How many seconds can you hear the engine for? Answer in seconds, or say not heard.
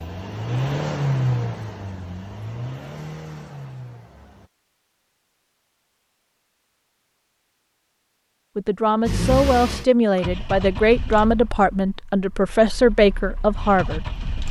10 s.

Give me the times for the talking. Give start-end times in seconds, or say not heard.
8.6-14.2.